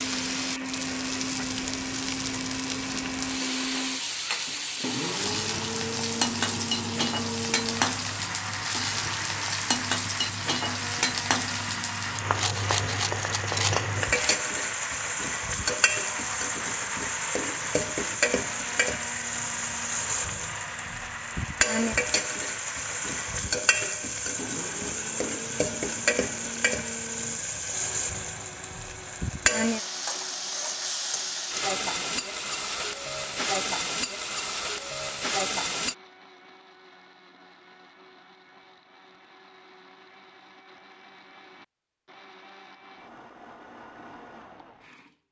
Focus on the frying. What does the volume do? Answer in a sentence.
The volume of the frying stays about the same.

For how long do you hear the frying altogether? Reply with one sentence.
You can hear the frying for 36 seconds altogether.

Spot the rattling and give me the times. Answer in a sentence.
You can hear the rattling from 12.3 to 14.4 s.